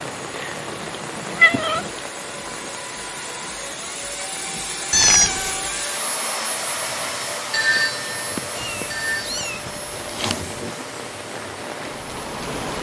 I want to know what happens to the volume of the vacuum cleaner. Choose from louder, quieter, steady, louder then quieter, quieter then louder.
louder then quieter.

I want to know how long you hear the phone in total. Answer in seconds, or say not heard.
2 s.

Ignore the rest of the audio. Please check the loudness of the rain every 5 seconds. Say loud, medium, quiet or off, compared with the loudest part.
loud, medium, loud.